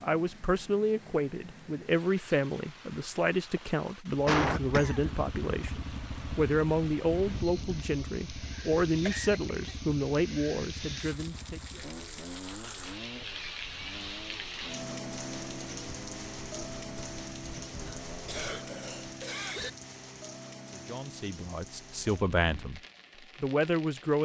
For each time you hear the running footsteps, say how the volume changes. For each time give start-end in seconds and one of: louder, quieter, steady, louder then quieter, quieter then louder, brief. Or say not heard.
not heard.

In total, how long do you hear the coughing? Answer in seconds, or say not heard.
3 s.